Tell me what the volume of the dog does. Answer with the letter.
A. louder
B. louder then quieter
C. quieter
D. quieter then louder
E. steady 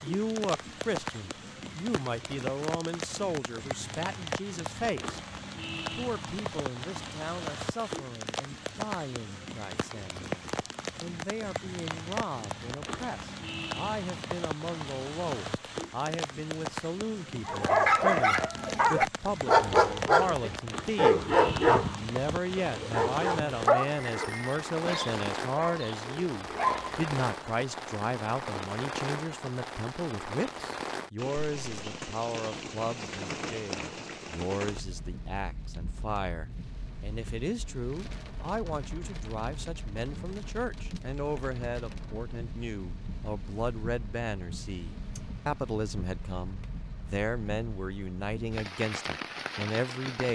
C.